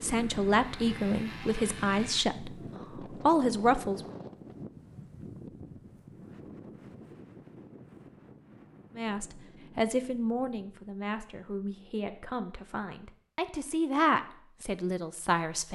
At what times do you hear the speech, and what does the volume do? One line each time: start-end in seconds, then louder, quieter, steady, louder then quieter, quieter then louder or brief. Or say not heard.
0.0-4.0 quieter then louder
8.9-15.6 quieter then louder.